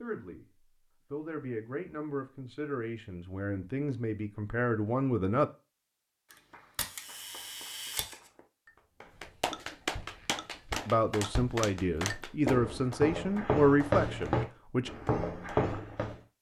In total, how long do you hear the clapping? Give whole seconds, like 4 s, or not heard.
9 s.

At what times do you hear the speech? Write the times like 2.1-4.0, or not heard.
0.0-5.5, 10.8-14.9.